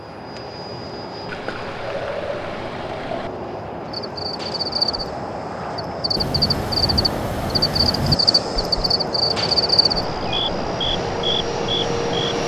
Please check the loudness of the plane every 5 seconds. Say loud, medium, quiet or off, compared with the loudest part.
medium, loud, loud.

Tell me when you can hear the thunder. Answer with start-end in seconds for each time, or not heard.
6.2-8.2.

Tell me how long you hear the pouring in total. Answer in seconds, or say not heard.
2 s.